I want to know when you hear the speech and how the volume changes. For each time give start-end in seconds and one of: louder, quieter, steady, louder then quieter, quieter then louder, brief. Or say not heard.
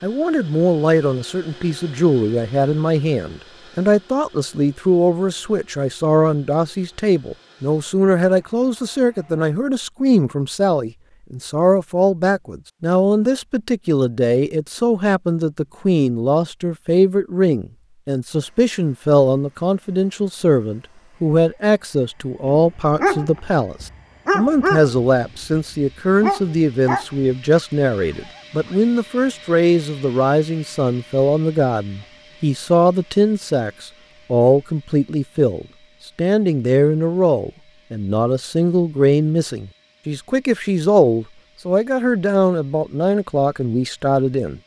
0.0-44.6 steady.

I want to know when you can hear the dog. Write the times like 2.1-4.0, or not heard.
22.4-28.8.